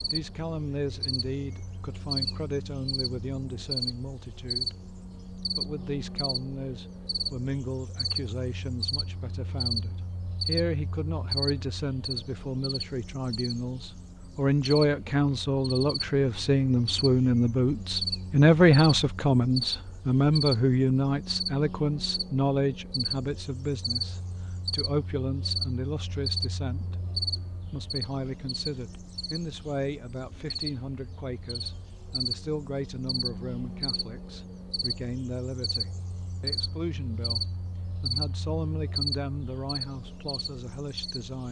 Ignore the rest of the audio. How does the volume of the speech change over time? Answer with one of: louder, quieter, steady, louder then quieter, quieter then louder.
louder then quieter.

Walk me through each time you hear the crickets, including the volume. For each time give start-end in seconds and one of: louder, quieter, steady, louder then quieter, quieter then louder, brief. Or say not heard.
0.0-41.4 steady.